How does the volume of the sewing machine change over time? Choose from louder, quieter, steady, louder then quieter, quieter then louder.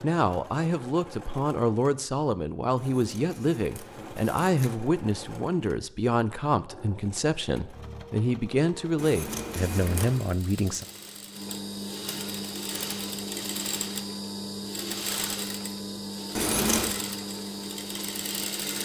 louder.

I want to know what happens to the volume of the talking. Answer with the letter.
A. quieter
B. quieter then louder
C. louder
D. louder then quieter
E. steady
E.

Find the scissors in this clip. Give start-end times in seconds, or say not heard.
2.8-4.8, 8.9-10.3, 16.4-16.9.